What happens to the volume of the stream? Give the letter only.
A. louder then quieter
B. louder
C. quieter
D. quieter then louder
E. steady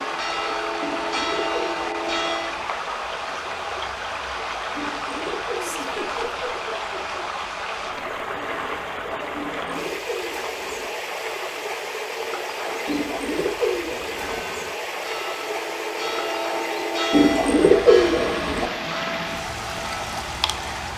E.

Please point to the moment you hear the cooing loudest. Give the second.
18 s.